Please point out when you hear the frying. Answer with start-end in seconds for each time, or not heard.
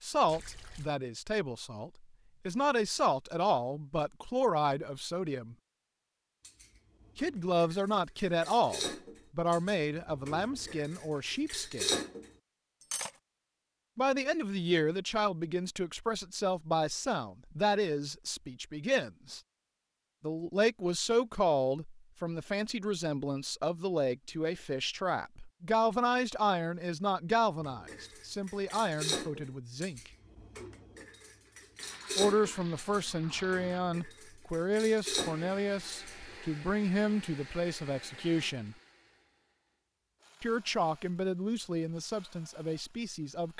not heard.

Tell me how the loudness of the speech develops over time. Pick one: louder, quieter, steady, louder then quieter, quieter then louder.
steady.